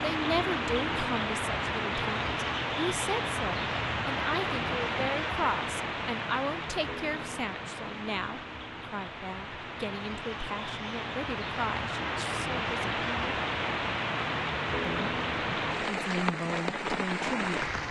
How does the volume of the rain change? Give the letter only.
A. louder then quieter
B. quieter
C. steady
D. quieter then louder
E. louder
D.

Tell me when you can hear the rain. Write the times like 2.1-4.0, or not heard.
0.0-17.8.